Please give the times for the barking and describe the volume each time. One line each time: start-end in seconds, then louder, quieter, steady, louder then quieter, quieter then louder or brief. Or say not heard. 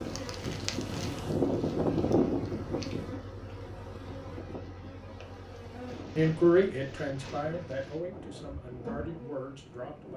not heard.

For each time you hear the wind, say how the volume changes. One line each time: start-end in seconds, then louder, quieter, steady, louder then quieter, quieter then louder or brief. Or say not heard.
0.0-10.1 quieter.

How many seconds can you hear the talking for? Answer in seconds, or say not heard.
4 s.